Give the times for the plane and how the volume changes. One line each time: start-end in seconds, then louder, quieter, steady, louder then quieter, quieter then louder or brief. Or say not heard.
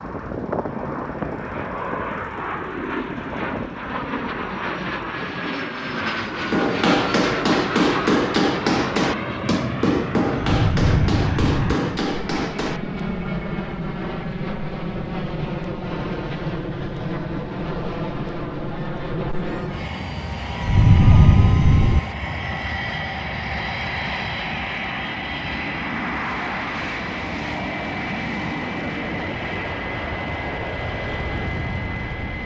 0.0-32.4 steady.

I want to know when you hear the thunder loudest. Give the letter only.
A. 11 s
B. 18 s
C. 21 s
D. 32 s
C.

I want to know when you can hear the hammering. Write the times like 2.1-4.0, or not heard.
6.3-13.1.